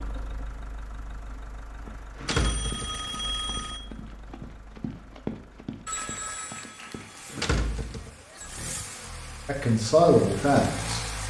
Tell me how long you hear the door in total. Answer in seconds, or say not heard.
2 s.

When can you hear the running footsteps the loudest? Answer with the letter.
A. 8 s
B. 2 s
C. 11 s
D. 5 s
D.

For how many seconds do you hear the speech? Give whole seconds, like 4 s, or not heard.
2 s.